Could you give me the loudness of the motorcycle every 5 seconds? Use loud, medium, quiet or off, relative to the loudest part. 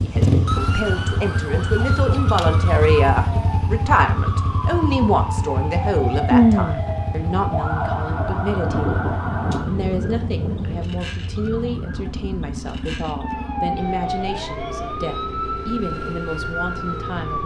loud, medium, medium, medium.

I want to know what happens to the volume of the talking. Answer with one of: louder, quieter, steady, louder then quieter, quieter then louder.
quieter.